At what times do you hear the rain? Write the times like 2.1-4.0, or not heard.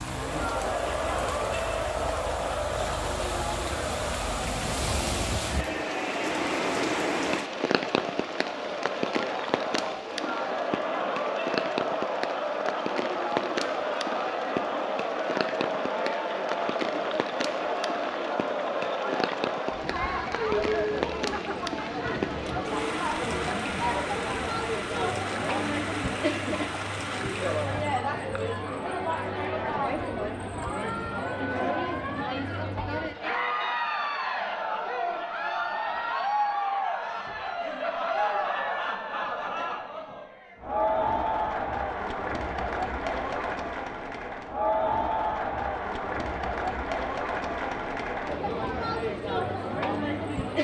0.0-27.9.